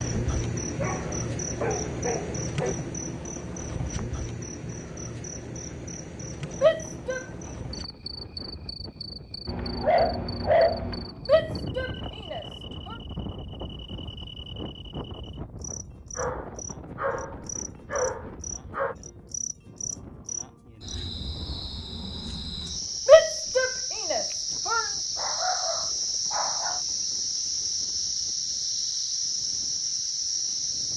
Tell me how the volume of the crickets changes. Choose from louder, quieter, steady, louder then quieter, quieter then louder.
quieter then louder.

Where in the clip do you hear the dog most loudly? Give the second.
11 s.